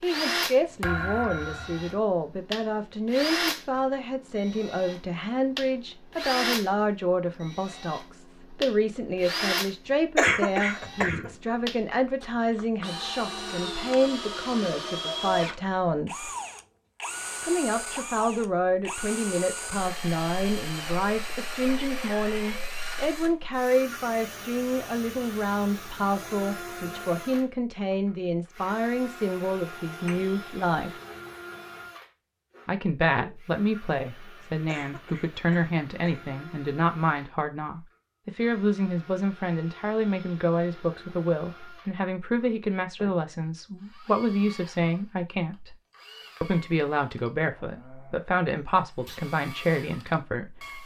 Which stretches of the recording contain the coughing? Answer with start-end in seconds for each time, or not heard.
10.2-11.3, 34.6-36.3.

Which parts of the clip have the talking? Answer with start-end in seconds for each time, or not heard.
0.0-16.3, 17.4-30.9, 32.6-45.8, 46.4-50.8.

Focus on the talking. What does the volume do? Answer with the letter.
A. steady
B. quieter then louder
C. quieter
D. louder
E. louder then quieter
A.